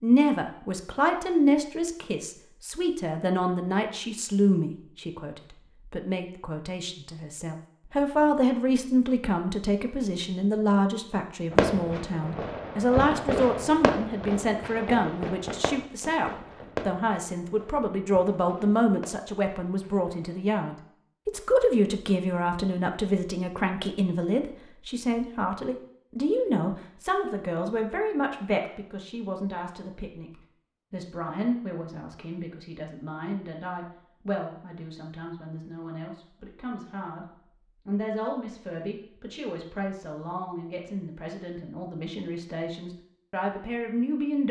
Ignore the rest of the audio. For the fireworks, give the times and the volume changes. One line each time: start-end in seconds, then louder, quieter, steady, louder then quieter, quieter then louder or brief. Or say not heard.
11.5-20.4 quieter.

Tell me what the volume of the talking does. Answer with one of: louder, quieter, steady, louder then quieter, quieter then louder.
quieter.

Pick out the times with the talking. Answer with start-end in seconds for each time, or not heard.
0.0-30.3, 30.9-37.2, 37.9-44.4.